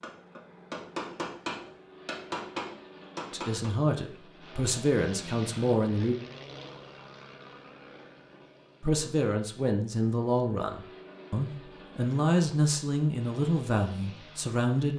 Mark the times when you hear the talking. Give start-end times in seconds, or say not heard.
3.3-6.2, 8.8-14.9.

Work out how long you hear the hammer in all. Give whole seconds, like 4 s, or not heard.
4 s.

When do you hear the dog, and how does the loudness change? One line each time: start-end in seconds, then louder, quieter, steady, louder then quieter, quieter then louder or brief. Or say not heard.
not heard.